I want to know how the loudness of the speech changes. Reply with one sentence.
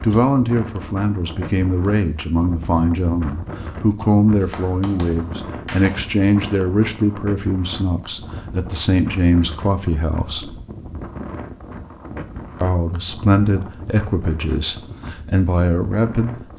The loudness of the speech stays about the same.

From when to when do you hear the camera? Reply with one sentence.
The camera can't be heard in this clip.